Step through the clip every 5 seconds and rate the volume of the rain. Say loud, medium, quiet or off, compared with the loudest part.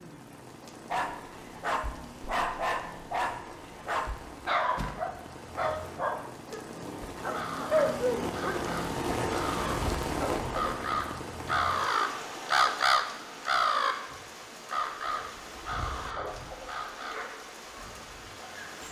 medium, loud, loud, medium.